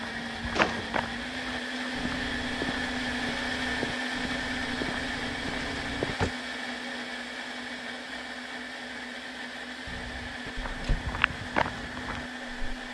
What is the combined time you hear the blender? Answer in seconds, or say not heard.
13 s.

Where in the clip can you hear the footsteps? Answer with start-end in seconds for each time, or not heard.
0.0-6.2, 10.4-12.8.